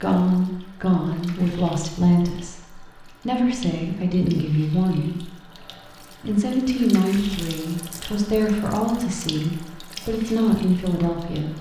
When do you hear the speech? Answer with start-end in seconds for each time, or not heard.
0.0-5.5, 6.2-11.5.